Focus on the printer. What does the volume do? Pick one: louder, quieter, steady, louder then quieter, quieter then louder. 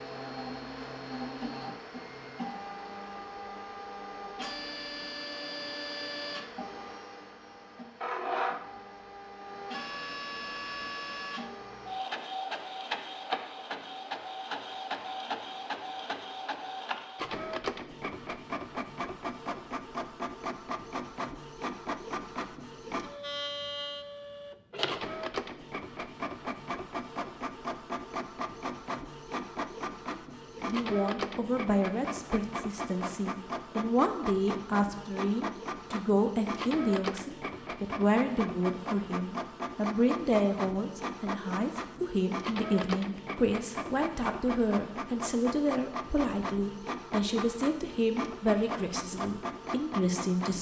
steady.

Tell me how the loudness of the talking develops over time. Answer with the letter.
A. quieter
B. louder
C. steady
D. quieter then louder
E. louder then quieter
C.